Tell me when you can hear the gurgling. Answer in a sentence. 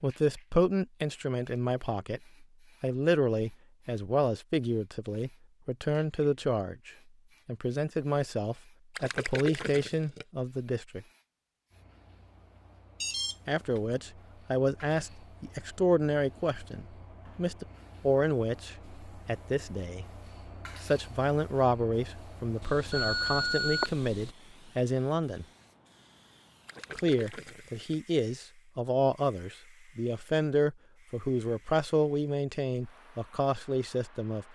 You can hear the gurgling from 8.9 to 10.2 s and from 26.6 to 27.9 s.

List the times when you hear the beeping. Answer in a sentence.
You can hear the beeping from 13.0 to 13.8 s and from 22.6 to 24.4 s.